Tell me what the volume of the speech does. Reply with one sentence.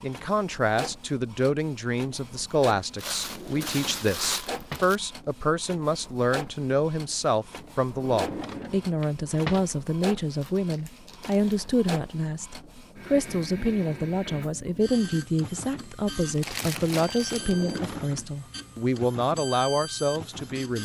The volume of the speech stays about the same.